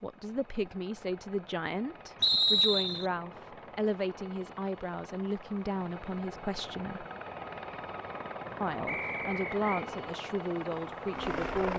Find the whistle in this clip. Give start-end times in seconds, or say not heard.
2.2-3.0, 8.8-9.8.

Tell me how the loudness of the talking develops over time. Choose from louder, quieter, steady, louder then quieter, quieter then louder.
steady.